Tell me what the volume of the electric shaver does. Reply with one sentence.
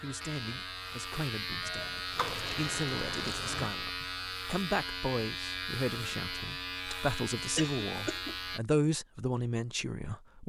The loudness of the electric shaver stays about the same.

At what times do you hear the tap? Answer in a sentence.
The tap can be heard from 2.1 to 3.7 s.